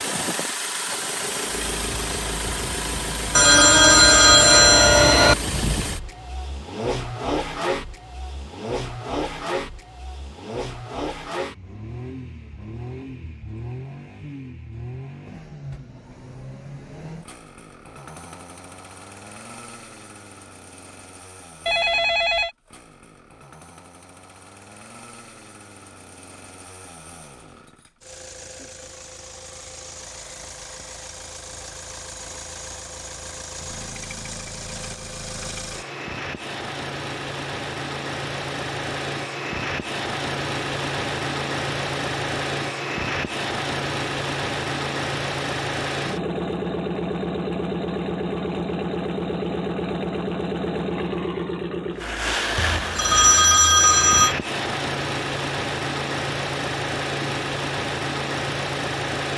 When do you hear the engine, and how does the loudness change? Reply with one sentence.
You can hear the engine from 0.0 to 59.3 s, getting quieter then louder.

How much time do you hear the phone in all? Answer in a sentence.
The phone can be heard for 5 seconds in total.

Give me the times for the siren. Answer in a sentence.
The siren can't be heard in this clip.